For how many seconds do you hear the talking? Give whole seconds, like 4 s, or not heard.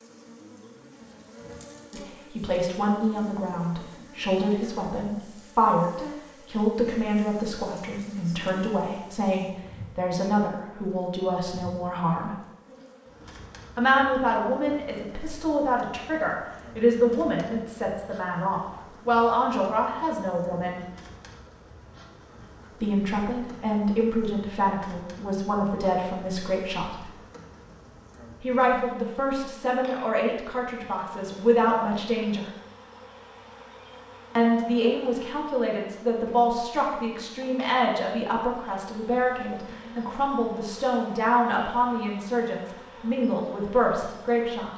36 s.